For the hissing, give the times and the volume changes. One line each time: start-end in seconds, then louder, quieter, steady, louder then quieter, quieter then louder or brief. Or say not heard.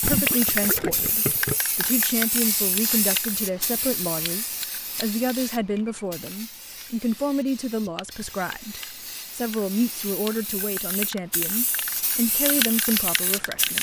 0.0-13.7 quieter then louder.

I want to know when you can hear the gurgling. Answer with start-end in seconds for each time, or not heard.
0.0-1.6.